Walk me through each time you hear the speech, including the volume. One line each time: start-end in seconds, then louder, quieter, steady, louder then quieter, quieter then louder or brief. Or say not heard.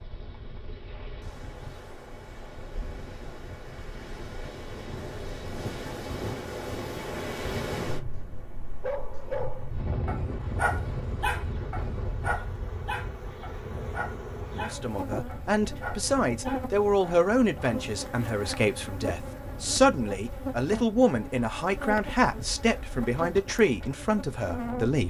14.6-25.0 steady.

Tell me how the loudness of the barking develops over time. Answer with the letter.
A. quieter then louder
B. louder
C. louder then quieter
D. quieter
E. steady
D.